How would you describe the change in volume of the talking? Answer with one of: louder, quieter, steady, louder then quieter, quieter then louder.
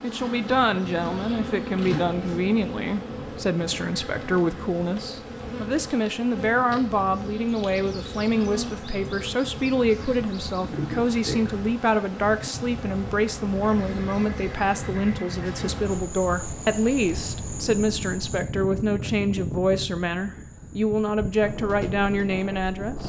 steady.